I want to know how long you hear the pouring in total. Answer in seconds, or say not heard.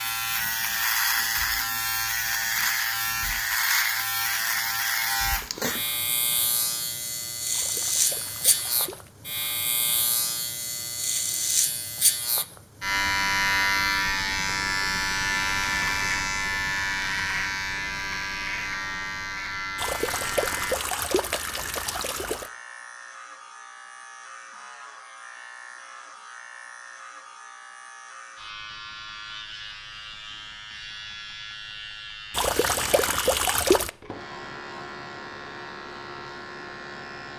6 s.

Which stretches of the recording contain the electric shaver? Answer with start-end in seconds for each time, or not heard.
0.0-37.3.